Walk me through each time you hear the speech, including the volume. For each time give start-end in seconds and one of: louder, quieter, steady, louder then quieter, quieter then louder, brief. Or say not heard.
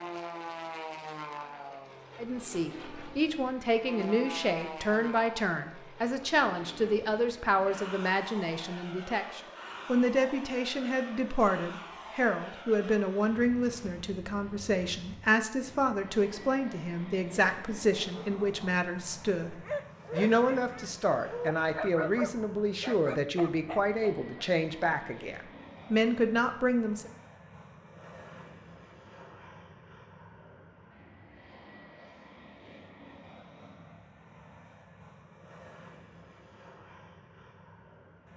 2.1-27.1 steady.